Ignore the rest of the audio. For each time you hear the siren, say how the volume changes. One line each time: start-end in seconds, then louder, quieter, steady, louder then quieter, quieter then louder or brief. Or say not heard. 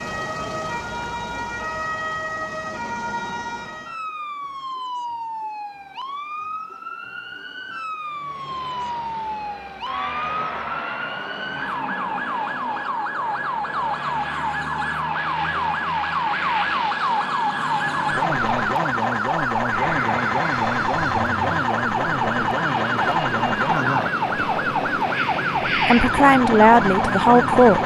0.0-27.8 louder.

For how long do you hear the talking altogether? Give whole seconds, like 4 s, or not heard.
2 s.